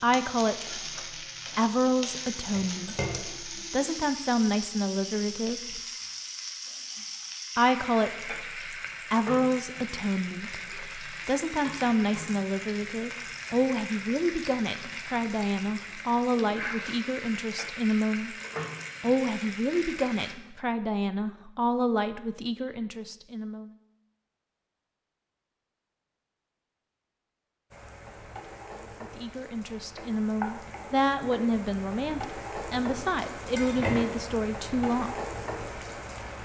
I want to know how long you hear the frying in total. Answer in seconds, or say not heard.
29 s.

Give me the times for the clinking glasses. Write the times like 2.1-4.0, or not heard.
2.4-3.3, 33.5-34.1.